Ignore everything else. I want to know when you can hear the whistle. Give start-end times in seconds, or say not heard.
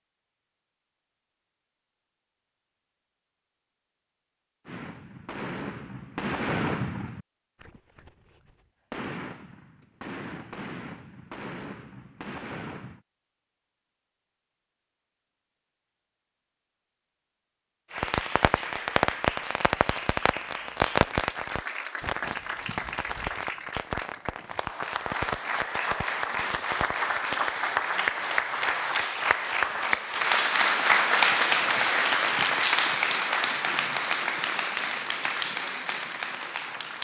not heard.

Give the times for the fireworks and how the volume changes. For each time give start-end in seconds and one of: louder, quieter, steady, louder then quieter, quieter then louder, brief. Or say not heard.
4.7-13.0 quieter
17.9-27.4 quieter.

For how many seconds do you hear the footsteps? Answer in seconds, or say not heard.
not heard.